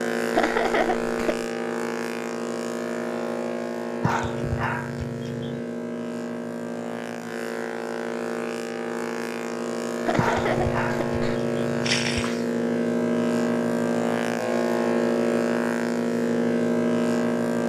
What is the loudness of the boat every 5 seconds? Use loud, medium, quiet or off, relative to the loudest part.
medium, medium, loud, loud.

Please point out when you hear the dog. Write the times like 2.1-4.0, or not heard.
4.0-5.7, 10.2-12.4.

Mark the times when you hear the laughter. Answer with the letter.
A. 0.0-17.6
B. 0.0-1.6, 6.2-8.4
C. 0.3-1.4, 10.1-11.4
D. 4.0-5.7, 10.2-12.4
C.